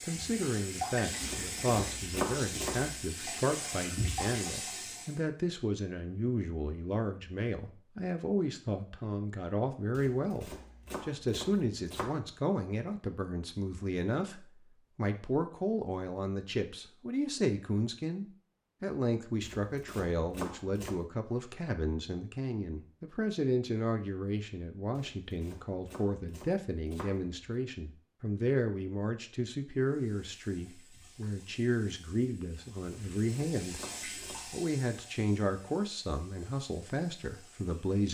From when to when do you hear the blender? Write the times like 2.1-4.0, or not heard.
not heard.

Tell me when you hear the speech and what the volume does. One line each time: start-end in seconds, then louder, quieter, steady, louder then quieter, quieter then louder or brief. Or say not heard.
0.0-38.0 steady.